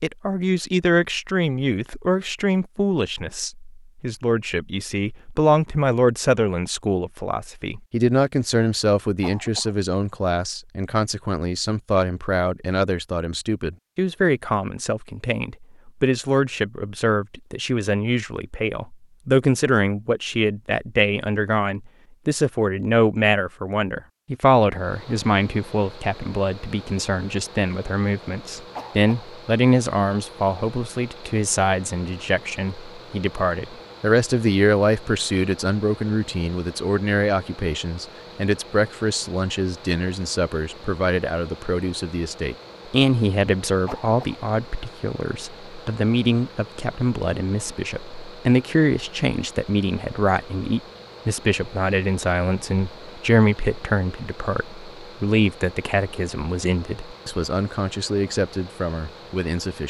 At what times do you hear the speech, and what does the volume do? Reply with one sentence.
You can hear the speech from 0.0 to 59.8 s, at a steady volume.